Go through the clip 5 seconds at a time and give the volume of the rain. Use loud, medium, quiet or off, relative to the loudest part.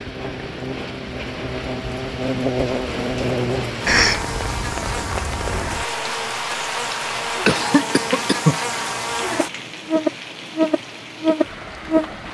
loud, loud, medium.